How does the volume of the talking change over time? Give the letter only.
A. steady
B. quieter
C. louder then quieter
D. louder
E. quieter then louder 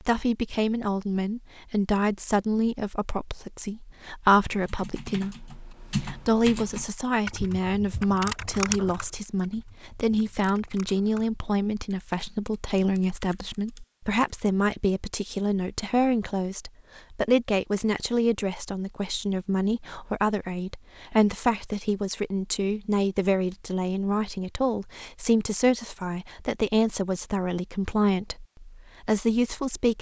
A.